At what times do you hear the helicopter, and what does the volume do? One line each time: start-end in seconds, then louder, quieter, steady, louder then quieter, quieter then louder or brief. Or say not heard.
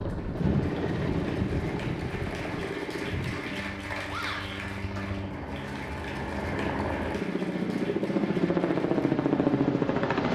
0.0-10.3 quieter then louder.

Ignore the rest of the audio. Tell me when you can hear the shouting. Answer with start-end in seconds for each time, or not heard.
4.0-4.7.